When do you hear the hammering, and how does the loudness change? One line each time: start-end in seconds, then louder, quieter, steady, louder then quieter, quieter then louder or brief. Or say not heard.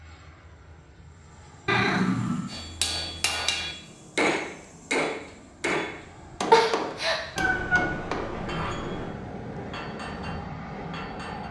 2.5-11.4 quieter.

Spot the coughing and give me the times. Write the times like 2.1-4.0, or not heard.
6.5-7.2.